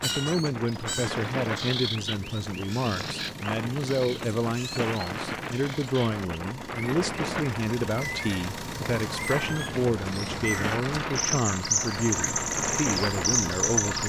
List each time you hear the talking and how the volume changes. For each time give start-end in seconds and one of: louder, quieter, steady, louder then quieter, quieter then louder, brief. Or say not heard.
0.0-14.0 steady.